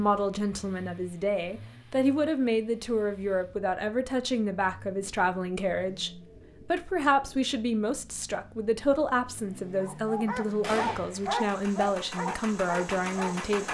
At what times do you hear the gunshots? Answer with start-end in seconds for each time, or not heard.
10.6-11.1.